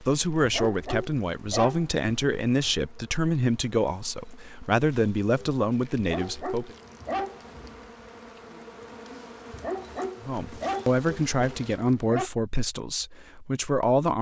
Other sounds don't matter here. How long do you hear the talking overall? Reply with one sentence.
You can hear the talking for 11 seconds altogether.